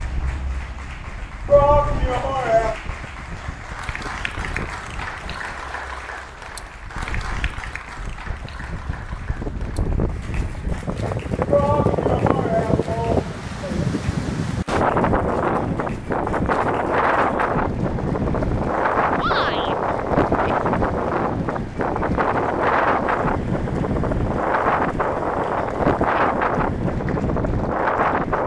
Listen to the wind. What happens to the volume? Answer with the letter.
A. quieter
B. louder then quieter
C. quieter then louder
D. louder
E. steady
D.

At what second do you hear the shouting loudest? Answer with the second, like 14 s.
2 s.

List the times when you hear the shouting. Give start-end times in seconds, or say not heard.
1.4-2.8, 11.4-13.8, 19.1-19.8.